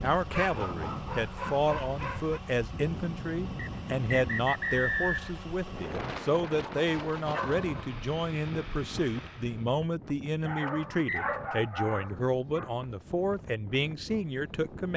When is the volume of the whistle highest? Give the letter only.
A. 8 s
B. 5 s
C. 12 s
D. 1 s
B.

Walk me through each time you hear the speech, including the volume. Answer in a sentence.
You can hear the speech from 0.0 to 14.9 s, at a steady volume.